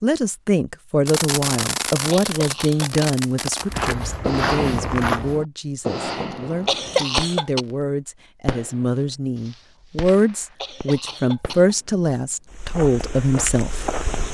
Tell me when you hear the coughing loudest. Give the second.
7 s.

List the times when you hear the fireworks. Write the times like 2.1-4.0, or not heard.
1.1-7.7, 8.4-12.0.